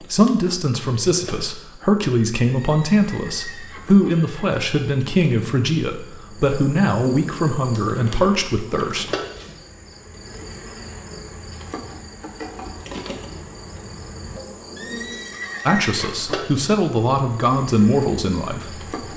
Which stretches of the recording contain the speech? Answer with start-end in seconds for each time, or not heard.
0.0-9.1, 15.7-18.9.